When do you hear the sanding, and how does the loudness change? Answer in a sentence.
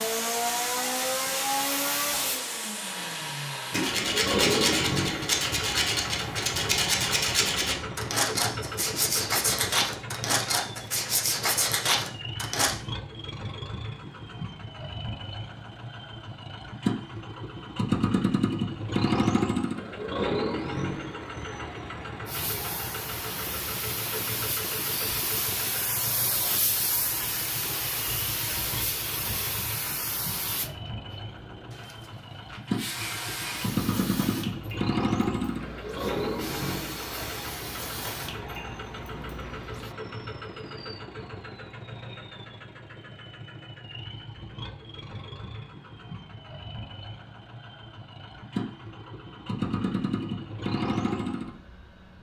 The sanding can be heard from 3.7 to 12.8 s, at a steady volume.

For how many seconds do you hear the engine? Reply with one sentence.
You can hear the engine for 52 seconds altogether.